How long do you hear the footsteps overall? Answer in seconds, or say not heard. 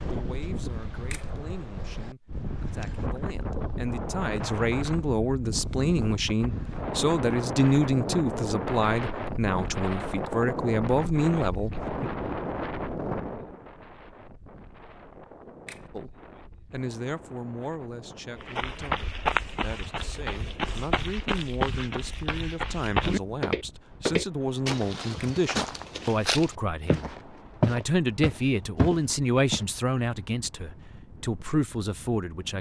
11 s.